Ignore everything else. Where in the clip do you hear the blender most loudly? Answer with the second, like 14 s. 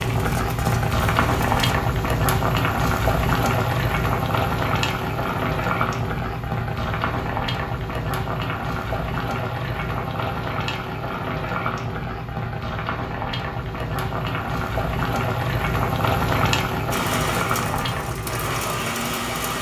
19 s.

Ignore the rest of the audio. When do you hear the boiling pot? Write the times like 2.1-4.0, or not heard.
0.0-19.5.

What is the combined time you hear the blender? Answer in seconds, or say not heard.
4 s.